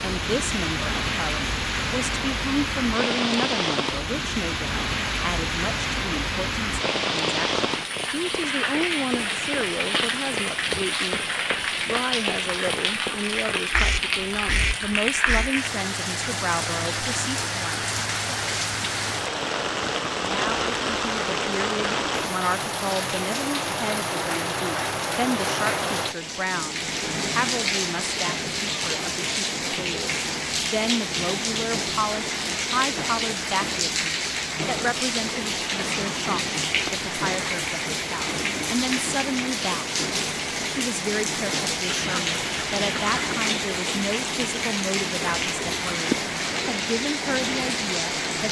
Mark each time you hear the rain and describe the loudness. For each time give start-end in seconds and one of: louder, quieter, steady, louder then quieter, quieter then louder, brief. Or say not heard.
0.0-48.4 steady.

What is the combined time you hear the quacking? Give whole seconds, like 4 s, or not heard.
3 s.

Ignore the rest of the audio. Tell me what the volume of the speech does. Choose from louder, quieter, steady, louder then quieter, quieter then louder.
steady.